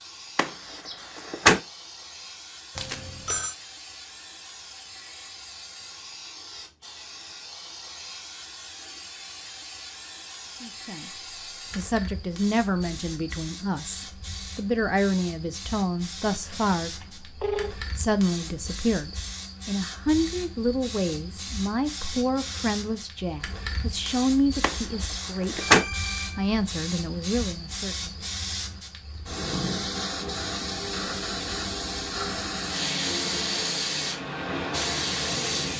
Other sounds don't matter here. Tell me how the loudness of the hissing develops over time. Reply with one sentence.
The volume of the hissing goes up.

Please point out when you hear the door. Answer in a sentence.
The door can be heard from 0.3 to 1.6 s and from 24.6 to 25.9 s.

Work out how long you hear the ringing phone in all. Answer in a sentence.
You can hear the ringing phone for 3 seconds altogether.